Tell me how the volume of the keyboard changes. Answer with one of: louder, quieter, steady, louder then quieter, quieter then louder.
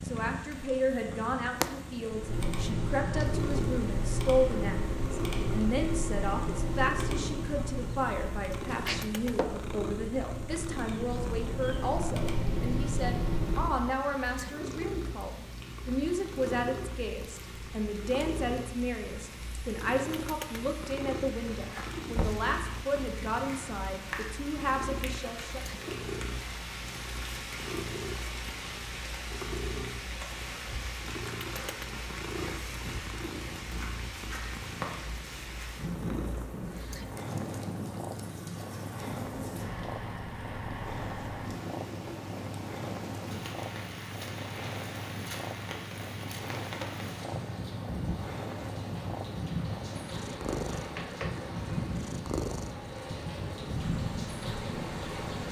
quieter then louder.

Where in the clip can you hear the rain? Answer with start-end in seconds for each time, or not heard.
0.0-55.4.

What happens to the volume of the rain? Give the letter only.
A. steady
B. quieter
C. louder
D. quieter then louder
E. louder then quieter
C.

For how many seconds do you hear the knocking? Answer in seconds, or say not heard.
2 s.